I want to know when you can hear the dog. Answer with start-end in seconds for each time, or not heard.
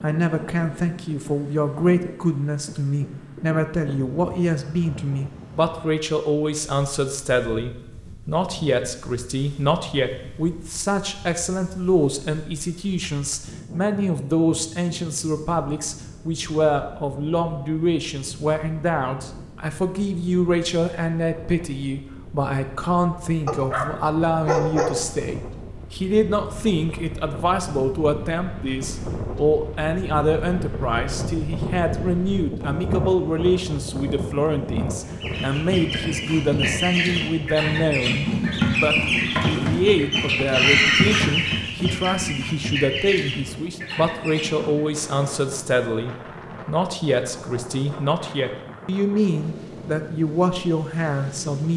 23.4-23.9, 24.4-24.9.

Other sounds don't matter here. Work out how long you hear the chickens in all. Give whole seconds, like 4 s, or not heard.
10 s.